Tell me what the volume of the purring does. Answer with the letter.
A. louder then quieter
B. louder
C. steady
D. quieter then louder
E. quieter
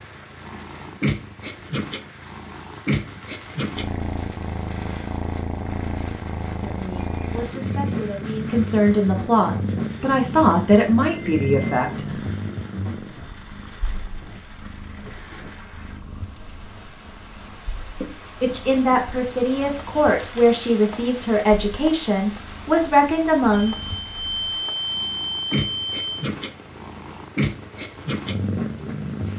D.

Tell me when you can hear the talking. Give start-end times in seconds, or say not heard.
6.6-12.2, 18.4-23.8.